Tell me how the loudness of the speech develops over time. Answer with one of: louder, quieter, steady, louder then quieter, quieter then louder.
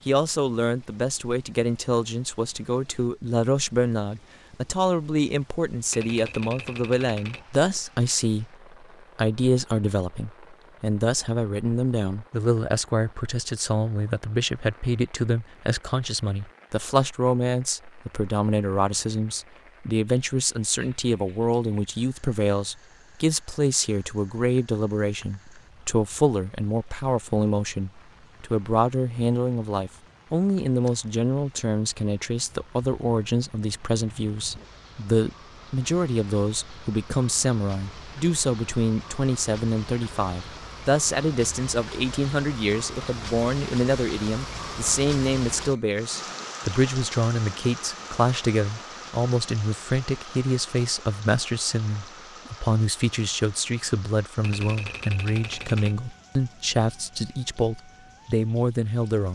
steady.